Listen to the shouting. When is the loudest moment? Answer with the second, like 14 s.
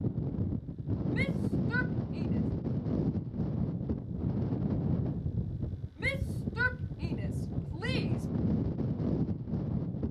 7 s.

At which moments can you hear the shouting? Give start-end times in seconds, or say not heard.
1.1-2.4, 6.0-8.2.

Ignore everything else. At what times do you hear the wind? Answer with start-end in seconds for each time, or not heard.
0.0-10.0.